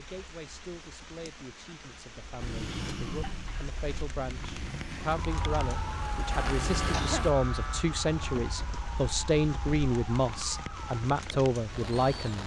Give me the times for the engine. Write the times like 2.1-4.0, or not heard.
2.4-7.3.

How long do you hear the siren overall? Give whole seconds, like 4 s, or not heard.
7 s.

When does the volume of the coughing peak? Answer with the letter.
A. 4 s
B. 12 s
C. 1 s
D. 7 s
D.